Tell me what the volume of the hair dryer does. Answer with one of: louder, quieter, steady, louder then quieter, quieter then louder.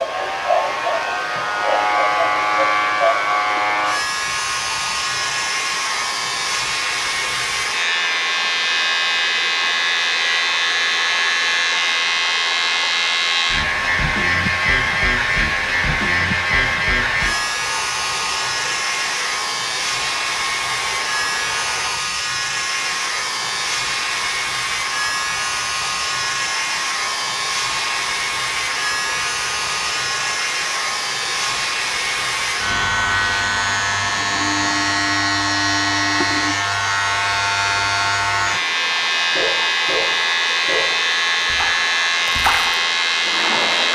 steady.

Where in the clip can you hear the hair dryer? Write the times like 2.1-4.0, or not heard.
0.0-43.8.